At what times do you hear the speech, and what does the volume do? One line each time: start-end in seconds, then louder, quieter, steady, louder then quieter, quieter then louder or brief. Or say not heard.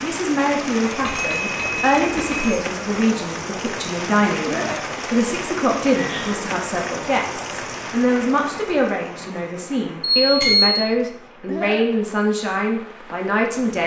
0.0-13.8 steady.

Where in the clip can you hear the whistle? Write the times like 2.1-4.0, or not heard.
not heard.